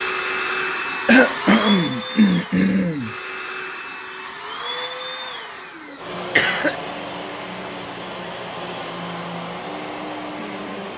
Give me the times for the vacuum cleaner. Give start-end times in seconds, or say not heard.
0.0-10.9.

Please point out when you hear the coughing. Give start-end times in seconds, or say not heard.
1.1-3.1, 6.3-6.8.